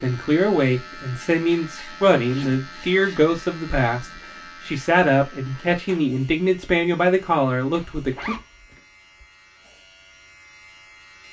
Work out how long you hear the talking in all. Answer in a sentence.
The talking can be heard for 8 seconds in total.